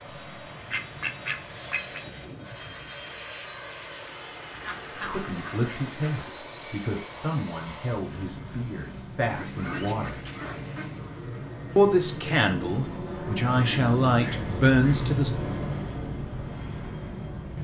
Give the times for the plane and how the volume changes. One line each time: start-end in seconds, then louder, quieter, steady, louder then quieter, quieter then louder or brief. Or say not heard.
0.0-17.5 louder.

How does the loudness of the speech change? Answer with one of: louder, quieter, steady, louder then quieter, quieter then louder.
louder.